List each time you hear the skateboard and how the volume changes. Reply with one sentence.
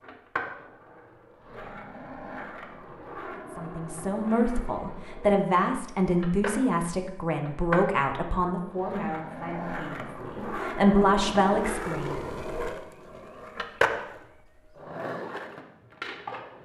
You can hear the skateboard from 0.0 to 16.6 s, getting louder.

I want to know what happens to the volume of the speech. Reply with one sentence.
The loudness of the speech goes down, then up.